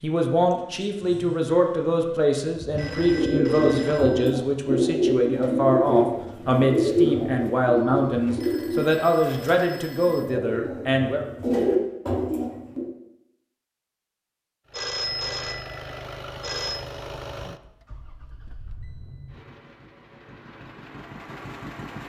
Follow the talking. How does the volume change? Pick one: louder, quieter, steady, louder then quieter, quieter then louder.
steady.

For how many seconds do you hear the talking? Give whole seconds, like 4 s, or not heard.
11 s.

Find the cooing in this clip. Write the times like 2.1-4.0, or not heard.
2.6-12.9.